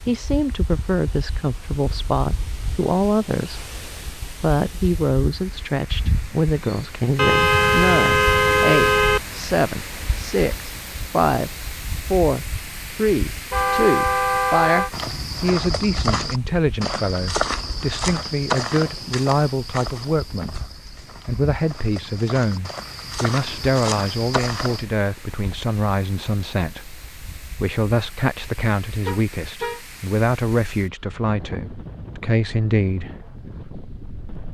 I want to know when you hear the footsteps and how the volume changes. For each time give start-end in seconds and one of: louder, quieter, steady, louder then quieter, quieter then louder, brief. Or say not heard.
14.9-24.9 quieter then louder.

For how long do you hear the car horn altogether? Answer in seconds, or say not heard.
4 s.